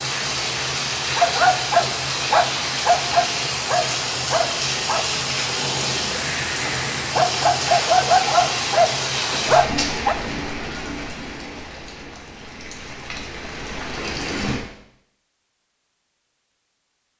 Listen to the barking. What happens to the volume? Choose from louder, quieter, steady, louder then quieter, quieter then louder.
quieter then louder.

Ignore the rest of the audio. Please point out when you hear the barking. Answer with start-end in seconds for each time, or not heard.
1.0-10.2.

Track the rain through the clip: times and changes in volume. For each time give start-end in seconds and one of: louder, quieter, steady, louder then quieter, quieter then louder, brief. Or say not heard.
0.0-14.6 quieter.